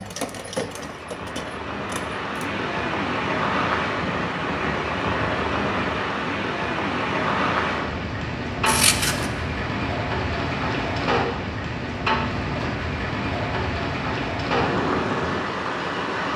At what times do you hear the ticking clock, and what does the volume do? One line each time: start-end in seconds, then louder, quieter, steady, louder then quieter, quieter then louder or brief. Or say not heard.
not heard.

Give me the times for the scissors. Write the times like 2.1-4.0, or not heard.
8.7-9.3.